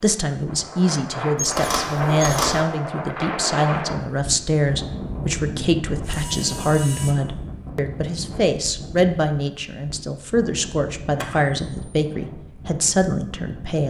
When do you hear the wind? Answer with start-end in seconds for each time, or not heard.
0.0-13.8.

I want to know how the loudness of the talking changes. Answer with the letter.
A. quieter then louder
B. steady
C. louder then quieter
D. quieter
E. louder
B.